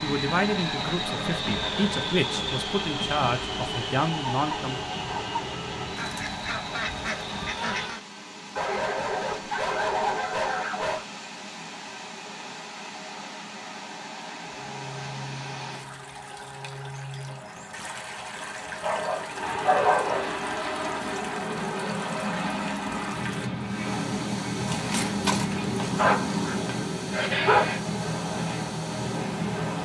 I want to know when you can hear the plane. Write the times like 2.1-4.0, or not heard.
0.0-7.9, 14.4-29.8.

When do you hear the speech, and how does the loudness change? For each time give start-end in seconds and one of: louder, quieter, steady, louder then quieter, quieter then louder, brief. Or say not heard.
0.0-4.8 steady.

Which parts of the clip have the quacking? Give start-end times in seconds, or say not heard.
6.0-8.0, 24.6-26.6.